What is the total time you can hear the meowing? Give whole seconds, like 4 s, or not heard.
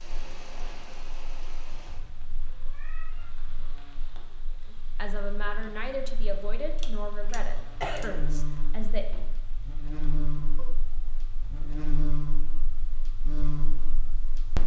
2 s.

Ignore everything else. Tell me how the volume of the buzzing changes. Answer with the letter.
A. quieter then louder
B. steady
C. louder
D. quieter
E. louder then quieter
C.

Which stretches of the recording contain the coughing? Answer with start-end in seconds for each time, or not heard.
6.8-8.2.